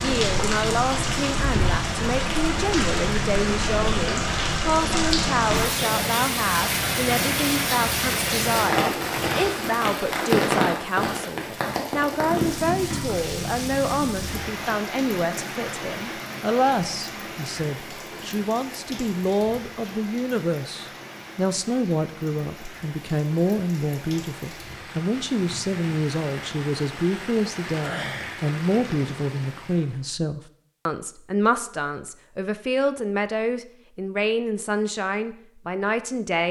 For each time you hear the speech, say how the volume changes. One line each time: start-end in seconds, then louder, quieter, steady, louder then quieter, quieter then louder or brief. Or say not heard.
0.0-36.4 steady.